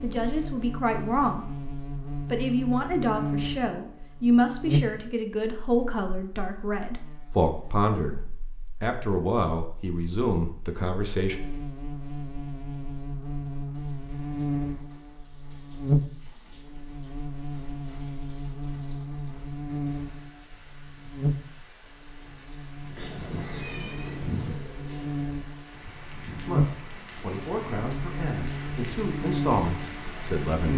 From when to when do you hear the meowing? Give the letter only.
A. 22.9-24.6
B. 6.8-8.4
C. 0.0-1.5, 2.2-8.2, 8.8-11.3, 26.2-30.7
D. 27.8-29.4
A.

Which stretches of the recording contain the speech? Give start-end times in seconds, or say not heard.
0.0-1.5, 2.2-8.2, 8.8-11.3, 26.2-30.7.